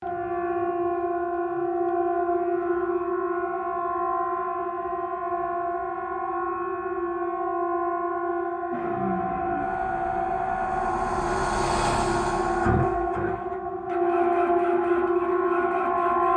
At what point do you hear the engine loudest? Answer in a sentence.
The volume of the engine peaks at 12 seconds.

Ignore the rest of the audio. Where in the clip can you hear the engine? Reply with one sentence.
You can hear the engine from 8.7 to 16.3 s.